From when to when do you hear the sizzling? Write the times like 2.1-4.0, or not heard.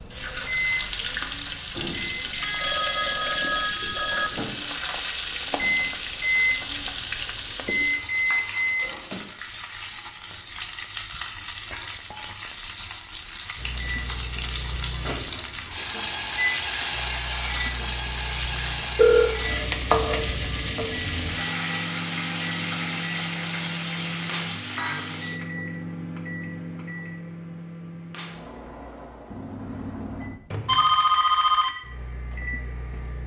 0.0-25.4.